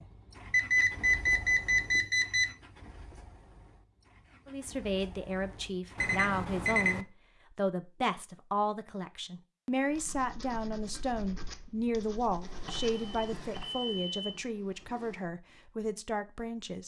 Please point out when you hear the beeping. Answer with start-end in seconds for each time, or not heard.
0.5-2.5, 6.0-7.0, 12.7-14.4.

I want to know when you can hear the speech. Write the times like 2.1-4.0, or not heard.
4.5-16.8.